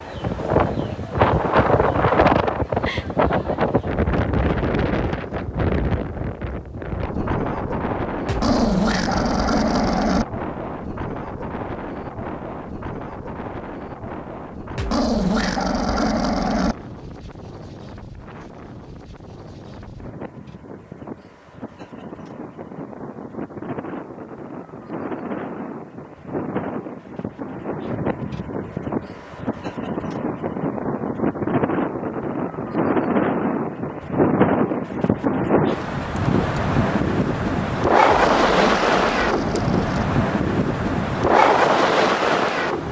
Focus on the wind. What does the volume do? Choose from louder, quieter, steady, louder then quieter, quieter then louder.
quieter then louder.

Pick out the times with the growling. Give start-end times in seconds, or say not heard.
8.2-10.2, 14.8-16.8, 38.0-40.0.